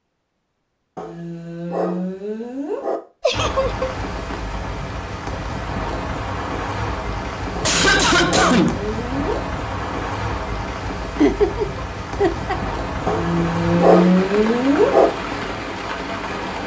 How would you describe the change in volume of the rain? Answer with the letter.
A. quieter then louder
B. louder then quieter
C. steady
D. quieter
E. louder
C.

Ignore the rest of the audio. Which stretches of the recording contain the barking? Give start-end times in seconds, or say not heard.
0.9-3.0, 7.5-9.4, 13.1-15.1.